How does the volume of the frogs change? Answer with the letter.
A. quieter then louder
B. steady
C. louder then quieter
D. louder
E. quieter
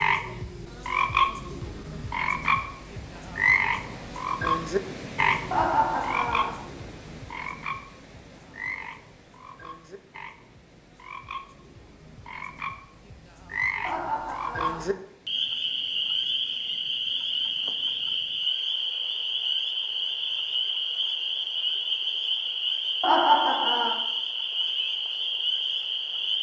A.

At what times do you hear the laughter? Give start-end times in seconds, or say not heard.
5.5-6.5, 13.8-14.9, 23.0-23.9.